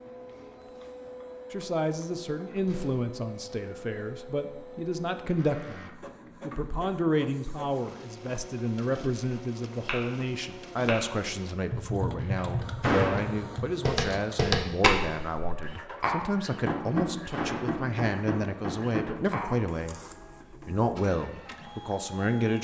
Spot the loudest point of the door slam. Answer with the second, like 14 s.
13 s.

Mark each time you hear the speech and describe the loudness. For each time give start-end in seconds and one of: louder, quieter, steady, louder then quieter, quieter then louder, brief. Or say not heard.
1.5-20.0 steady
20.6-22.6 brief.